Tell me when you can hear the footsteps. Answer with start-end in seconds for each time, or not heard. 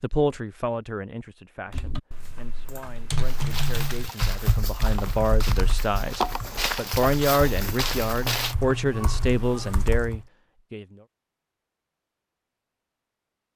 3.2-8.6.